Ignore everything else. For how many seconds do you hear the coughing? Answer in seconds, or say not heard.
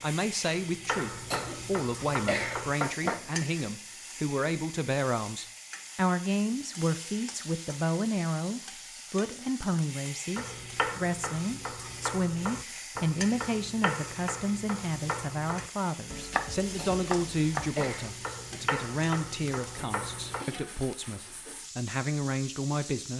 4 s.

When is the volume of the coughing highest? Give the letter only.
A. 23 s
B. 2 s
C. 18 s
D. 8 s
B.